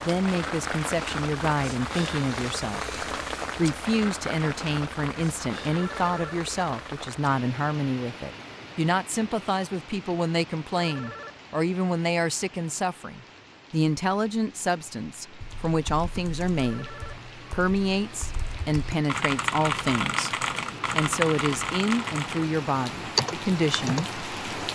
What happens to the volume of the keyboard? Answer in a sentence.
The volume of the keyboard goes up.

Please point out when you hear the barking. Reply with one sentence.
You can't hear the barking here.